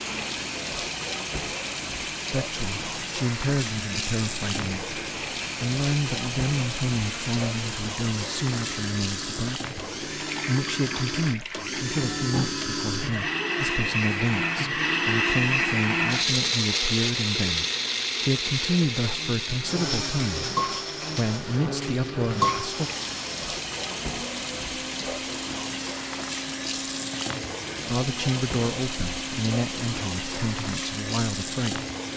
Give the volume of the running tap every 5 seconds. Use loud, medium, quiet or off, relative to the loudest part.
loud, loud, medium, medium, loud, loud, loud.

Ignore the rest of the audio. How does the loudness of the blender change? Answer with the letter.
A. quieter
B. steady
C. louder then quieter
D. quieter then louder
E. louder
C.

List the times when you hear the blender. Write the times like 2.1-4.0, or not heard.
0.0-32.1.